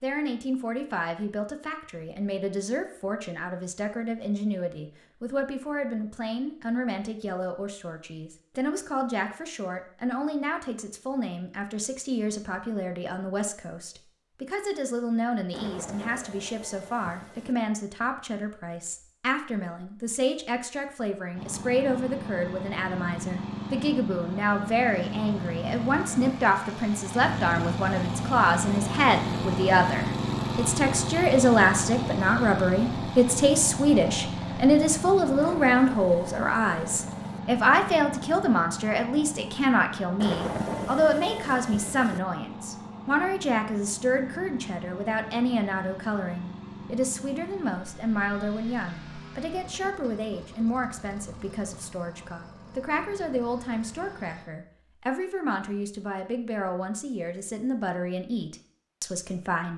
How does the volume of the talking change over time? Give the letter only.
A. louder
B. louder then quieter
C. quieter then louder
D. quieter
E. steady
B.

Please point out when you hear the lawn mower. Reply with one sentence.
The lawn mower can be heard from 21.3 to 54.5 s.